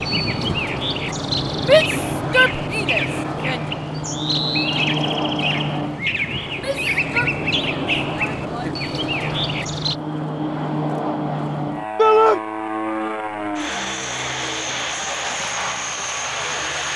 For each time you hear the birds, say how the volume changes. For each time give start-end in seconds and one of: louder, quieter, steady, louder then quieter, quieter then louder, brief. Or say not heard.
0.0-9.9 steady.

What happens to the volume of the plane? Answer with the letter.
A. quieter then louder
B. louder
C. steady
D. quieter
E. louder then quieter
C.